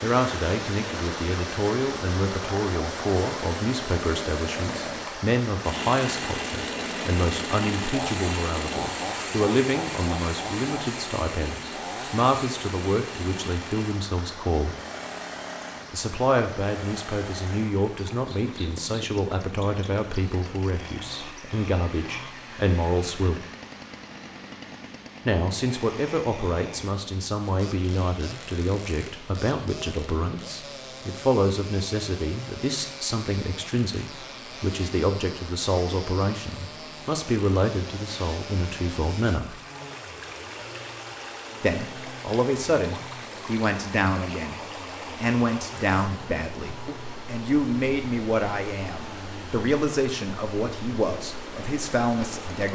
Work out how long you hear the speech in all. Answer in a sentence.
You can hear the speech for 48 seconds altogether.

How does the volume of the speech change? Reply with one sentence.
The volume of the speech stays about the same.